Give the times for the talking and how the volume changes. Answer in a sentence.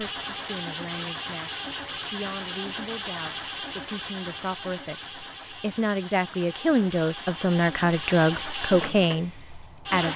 You can hear the talking from 0.0 to 10.1 s, getting louder.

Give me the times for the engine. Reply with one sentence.
The engine can be heard from 0.0 to 10.1 s.